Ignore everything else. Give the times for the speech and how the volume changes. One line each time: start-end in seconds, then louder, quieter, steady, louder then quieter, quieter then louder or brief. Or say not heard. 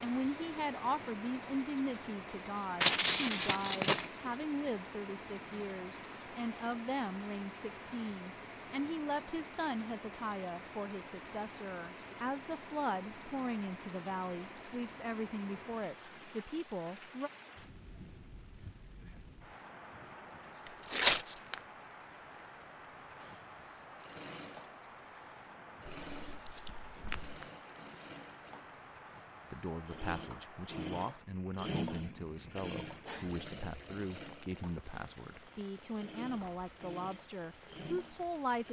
0.0-17.3 steady
29.5-38.6 steady.